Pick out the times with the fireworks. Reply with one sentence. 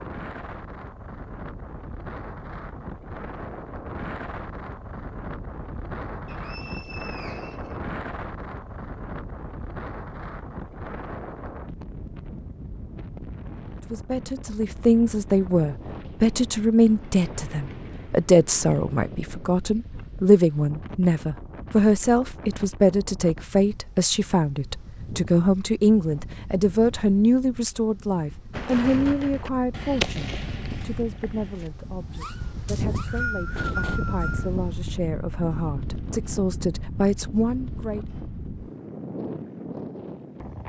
You can hear the fireworks from 28.5 to 34.0 s.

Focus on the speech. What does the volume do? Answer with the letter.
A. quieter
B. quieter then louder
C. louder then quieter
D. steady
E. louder
A.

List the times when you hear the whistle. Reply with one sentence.
The whistle can be heard from 6.2 to 7.8 s and from 32.6 to 34.5 s.